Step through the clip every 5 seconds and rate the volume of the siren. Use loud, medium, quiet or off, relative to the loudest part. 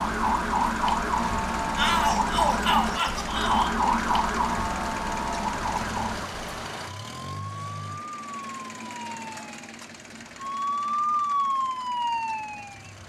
loud, medium, loud.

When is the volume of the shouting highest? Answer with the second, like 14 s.
2 s.